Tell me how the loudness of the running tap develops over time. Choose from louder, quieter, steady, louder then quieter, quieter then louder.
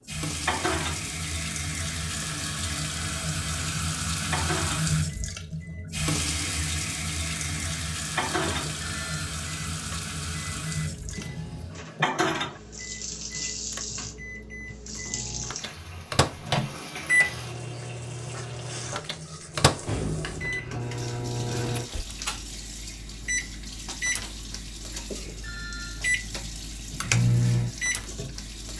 quieter.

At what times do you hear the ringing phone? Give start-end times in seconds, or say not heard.
8.4-9.3, 25.1-26.1.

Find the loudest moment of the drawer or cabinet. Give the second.
12 s.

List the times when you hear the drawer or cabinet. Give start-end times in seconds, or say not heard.
10.8-12.1, 19.8-20.5.